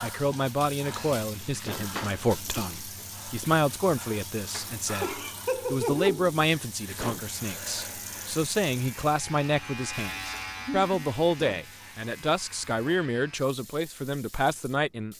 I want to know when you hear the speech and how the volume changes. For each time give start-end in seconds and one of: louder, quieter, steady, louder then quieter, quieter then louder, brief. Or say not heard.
0.0-15.1 steady.